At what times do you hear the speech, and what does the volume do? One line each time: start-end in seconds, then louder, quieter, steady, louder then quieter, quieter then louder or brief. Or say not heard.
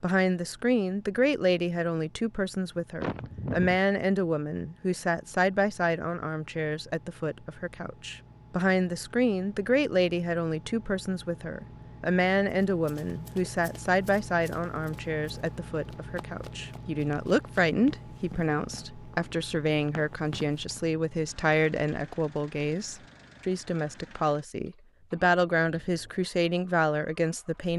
0.0-27.7 steady.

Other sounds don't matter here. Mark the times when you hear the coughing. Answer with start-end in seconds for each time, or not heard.
3.0-3.8.